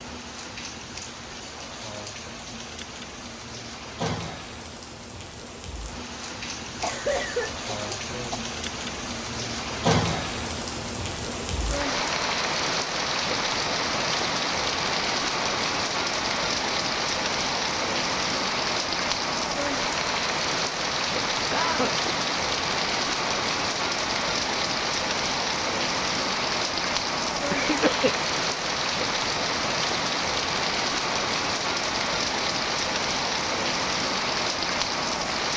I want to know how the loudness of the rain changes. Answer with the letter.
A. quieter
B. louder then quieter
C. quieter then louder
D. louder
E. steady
D.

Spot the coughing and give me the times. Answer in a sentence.
You can hear the coughing from 6.8 to 8.4 s, from 21.5 to 21.9 s and from 27.5 to 28.1 s.